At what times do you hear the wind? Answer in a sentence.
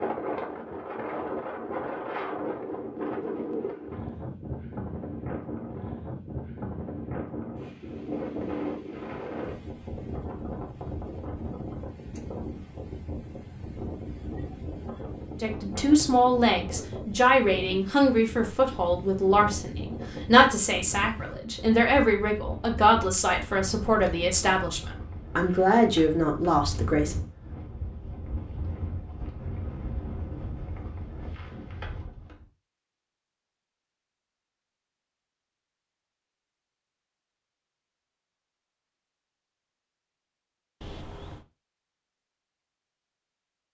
The wind can be heard from 0.0 to 32.5 s.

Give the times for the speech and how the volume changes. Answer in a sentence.
You can hear the speech from 15.4 to 27.1 s, at a steady volume.